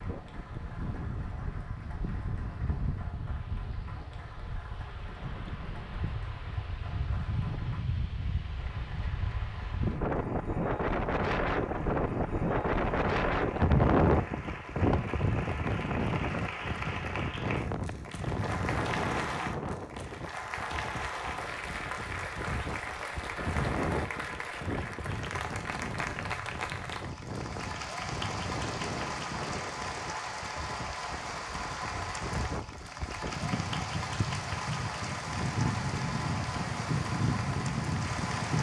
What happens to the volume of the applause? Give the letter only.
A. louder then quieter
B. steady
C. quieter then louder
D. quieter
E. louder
E.